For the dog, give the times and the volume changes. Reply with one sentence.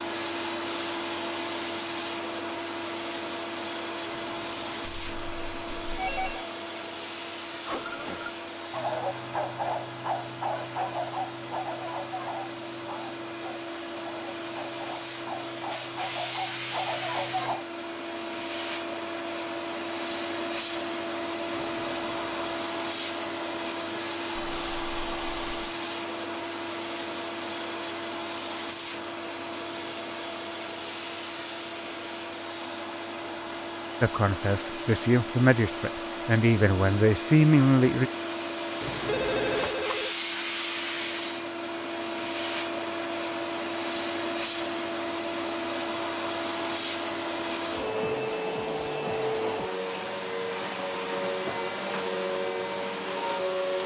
You can hear the dog from 7.7 to 17.6 s, getting quieter then louder.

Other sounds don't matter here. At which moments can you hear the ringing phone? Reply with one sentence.
The ringing phone can be heard from 4.8 to 6.5 s, from 24.4 to 25.7 s and from 39.0 to 40.1 s.